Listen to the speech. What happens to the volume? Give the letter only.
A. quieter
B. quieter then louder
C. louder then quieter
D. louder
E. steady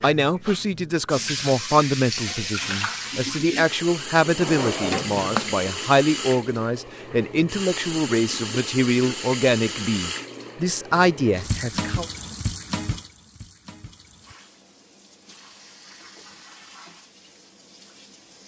E.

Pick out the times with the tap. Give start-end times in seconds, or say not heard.
0.0-18.4.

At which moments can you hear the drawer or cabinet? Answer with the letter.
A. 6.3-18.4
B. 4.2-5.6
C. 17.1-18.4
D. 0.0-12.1
B.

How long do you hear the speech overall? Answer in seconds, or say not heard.
12 s.